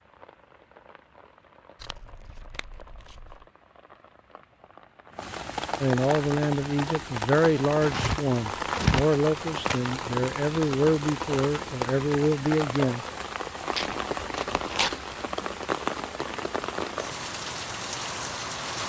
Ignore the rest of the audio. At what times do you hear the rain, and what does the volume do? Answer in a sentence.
You can hear the rain from 0.0 to 18.8 s, getting louder.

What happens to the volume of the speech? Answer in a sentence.
The volume of the speech stays about the same.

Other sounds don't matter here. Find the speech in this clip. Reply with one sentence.
You can hear the speech from 5.8 to 13.1 s.